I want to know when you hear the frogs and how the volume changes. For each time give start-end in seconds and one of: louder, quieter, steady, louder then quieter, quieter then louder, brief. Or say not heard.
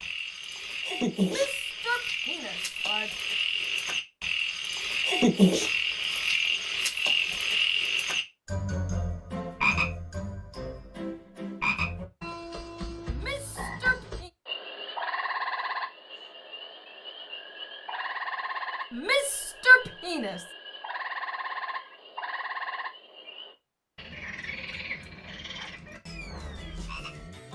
0.0-27.5 quieter.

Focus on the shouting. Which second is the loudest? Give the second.
20 s.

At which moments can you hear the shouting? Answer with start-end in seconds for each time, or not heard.
1.2-3.1, 13.1-14.3, 18.9-20.4.